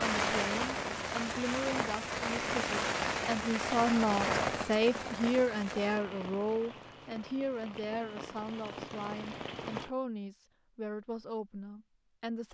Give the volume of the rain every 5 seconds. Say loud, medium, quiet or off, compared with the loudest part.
loud, medium, off.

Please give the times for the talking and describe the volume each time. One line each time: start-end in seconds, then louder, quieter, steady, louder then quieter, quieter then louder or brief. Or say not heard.
0.0-12.4 louder then quieter.